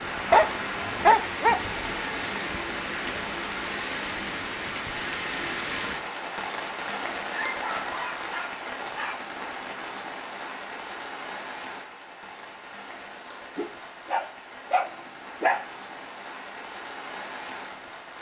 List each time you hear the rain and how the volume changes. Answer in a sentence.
You can hear the rain from 0.0 to 18.1 s, getting quieter.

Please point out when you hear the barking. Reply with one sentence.
You can hear the barking from 0.3 to 1.9 s, from 7.3 to 9.2 s and from 13.6 to 15.7 s.